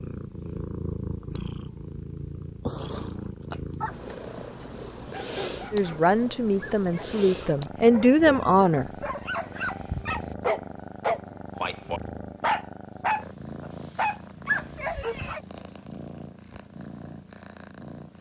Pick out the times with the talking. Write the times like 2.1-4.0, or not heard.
5.7-8.8.